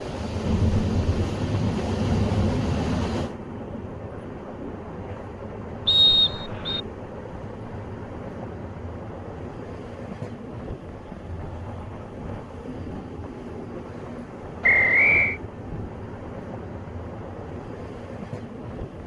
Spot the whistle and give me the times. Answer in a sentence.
You can hear the whistle from 5.8 to 6.8 s and from 14.6 to 15.4 s.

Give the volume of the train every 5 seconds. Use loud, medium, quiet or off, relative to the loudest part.
loud, medium, medium, medium.